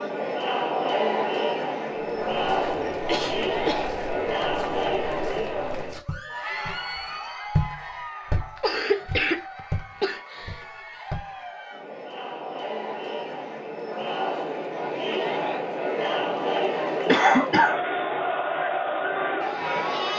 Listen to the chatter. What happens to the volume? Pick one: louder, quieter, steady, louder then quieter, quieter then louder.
quieter then louder.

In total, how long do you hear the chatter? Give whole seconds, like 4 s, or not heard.
20 s.